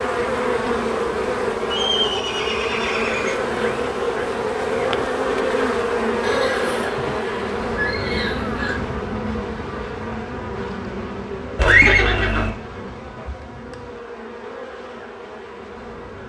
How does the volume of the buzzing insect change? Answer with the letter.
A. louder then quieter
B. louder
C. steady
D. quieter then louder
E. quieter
E.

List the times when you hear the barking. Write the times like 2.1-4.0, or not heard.
not heard.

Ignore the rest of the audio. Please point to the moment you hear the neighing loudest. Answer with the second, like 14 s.
12 s.